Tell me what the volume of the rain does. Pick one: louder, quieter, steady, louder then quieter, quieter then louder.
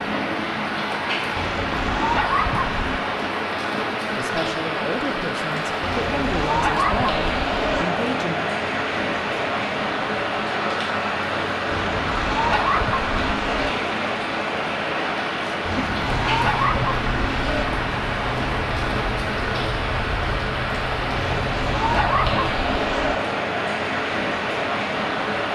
steady.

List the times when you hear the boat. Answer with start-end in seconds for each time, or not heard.
16.0-22.5.